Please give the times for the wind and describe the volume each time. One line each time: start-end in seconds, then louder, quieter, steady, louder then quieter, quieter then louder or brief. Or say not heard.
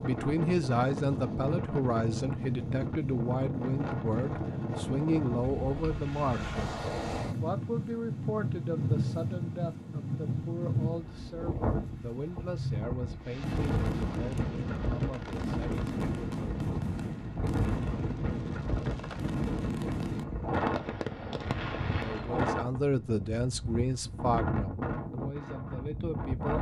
0.0-26.5 steady.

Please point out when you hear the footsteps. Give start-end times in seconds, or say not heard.
not heard.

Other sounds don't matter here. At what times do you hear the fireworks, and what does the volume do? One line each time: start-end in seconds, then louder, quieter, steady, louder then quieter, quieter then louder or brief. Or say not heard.
13.2-22.4 steady.